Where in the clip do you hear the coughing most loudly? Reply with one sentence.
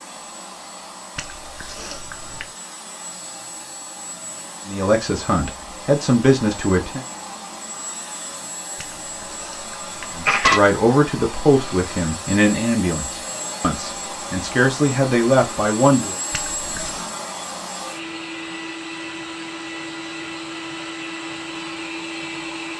The loudest moment of the coughing is at 10 seconds.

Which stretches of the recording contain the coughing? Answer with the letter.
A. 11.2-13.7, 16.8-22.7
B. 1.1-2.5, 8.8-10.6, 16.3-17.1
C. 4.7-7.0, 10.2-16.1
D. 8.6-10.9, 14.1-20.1
B.